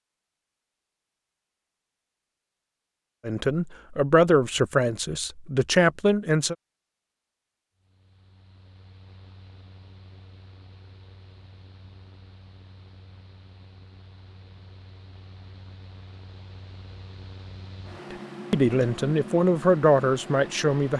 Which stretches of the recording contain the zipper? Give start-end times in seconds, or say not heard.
not heard.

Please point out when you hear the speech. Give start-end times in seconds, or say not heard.
3.2-6.5, 18.1-20.9.